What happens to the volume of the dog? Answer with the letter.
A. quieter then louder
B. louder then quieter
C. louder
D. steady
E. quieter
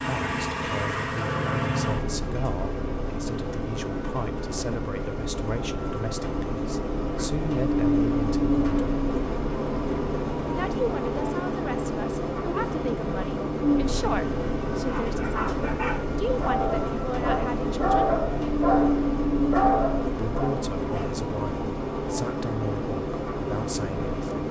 C.